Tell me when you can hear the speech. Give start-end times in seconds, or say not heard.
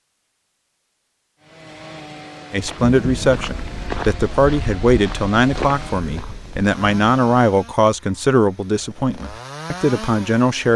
2.5-10.7.